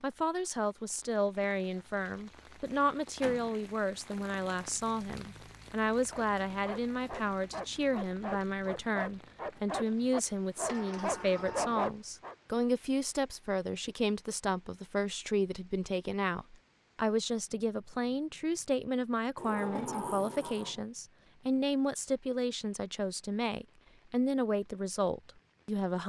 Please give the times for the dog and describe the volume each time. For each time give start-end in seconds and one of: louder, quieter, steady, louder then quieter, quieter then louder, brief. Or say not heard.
6.1-12.3 louder.